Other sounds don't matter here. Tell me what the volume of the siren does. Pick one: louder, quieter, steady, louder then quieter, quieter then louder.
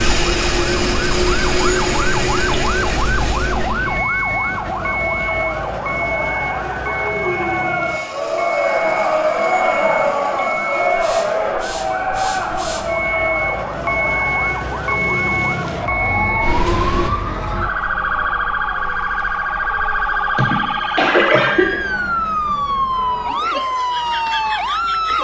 quieter then louder.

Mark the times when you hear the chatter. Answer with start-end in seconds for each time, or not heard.
4.2-25.1.